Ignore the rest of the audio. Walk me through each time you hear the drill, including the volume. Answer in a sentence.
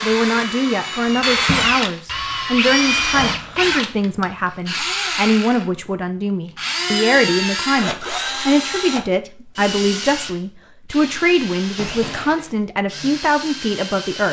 You can hear the drill from 0.0 to 14.2 s, getting quieter.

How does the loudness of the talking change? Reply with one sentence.
The volume of the talking stays about the same.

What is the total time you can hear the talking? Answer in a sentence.
You can hear the talking for 14 seconds altogether.